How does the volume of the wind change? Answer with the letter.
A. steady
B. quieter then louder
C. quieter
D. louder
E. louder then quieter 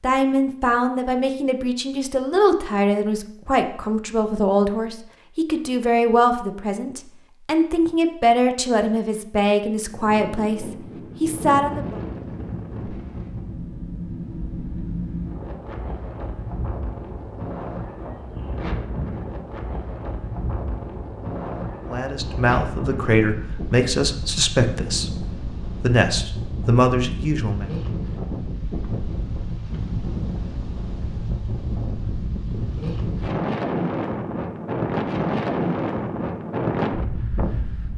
D.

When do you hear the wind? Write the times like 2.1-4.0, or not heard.
9.8-37.9.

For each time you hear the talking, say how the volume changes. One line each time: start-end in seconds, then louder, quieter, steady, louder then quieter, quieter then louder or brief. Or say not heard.
0.0-11.9 steady
21.9-27.6 steady.